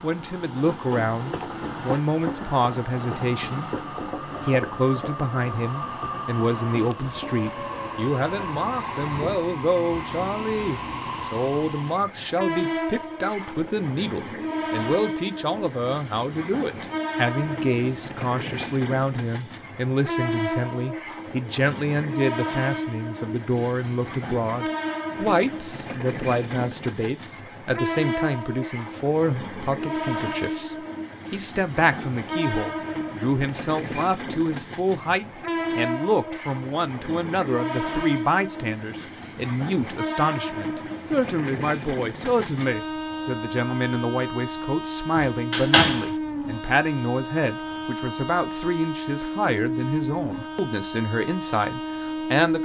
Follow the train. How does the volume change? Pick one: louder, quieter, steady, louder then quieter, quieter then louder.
steady.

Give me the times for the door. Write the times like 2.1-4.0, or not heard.
45.1-46.1.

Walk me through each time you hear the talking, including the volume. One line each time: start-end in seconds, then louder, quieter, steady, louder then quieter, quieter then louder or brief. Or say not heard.
0.0-52.5 steady.